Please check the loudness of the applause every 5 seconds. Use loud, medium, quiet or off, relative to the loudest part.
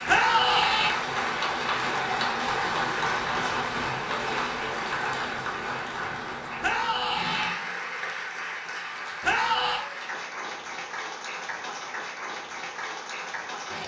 loud, medium, medium.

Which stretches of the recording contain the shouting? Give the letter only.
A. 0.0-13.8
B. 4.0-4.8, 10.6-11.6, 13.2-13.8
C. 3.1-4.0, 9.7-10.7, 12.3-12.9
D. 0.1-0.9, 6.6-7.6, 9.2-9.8
D.